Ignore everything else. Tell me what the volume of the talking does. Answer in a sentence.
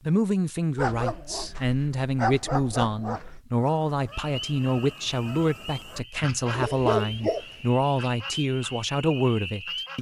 The volume of the talking stays about the same.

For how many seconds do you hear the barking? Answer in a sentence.
The barking can be heard for 4 seconds in total.